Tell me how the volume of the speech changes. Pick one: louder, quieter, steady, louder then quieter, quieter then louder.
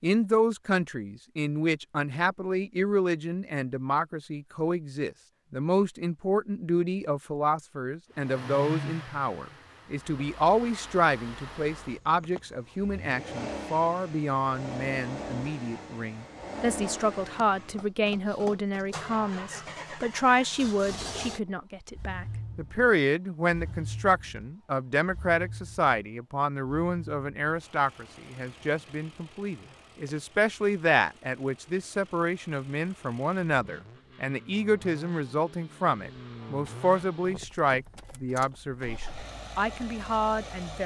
steady.